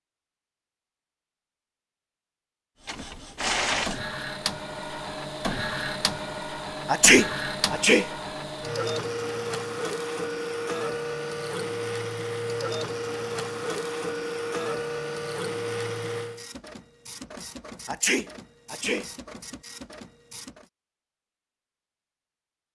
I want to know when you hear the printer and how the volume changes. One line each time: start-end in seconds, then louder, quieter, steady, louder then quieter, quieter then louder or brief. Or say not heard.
2.9-20.7 quieter.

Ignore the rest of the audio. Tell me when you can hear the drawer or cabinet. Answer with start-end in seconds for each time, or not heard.
not heard.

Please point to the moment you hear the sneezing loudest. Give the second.
7 s.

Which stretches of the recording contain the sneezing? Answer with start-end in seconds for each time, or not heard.
6.8-8.1, 17.9-19.1.